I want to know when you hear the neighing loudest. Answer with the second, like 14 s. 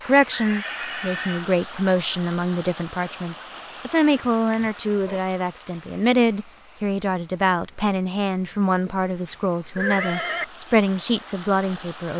10 s.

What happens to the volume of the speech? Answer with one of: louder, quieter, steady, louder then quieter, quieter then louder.
steady.